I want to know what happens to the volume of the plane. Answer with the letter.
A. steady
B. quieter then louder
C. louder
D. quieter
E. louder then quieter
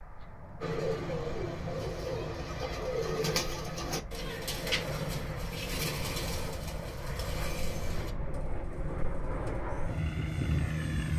C.